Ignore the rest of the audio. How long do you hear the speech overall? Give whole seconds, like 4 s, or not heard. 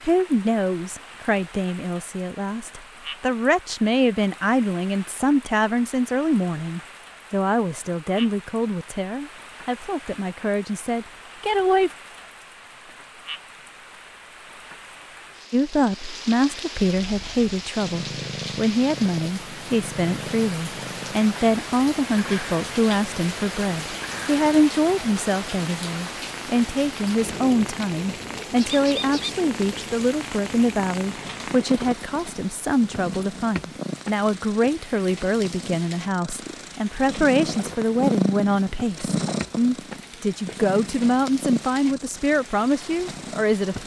40 s.